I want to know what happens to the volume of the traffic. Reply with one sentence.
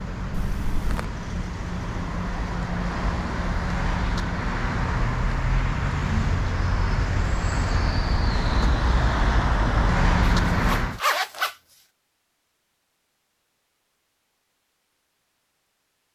The volume of the traffic goes up.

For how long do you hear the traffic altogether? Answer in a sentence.
You can hear the traffic for 11 seconds altogether.